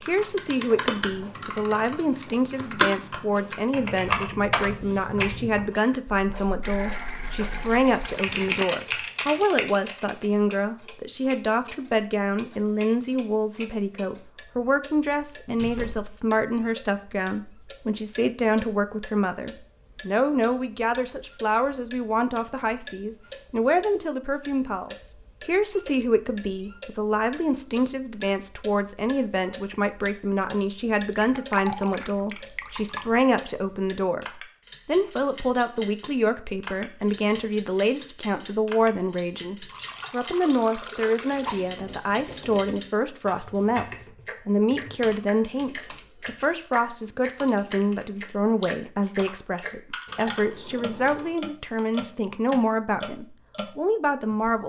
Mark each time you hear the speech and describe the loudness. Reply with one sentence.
The speech can be heard from 0.0 to 54.6 s, at a steady volume.